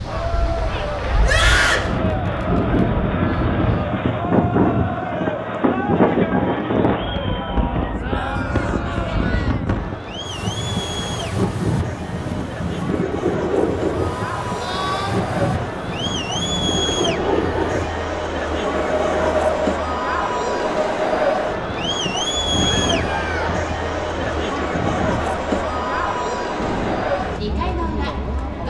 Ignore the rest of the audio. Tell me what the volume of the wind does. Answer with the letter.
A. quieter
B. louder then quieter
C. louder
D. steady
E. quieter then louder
A.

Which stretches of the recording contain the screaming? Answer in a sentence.
The screaming can be heard from 1.2 to 1.9 s, from 14.6 to 15.2 s and from 22.6 to 23.6 s.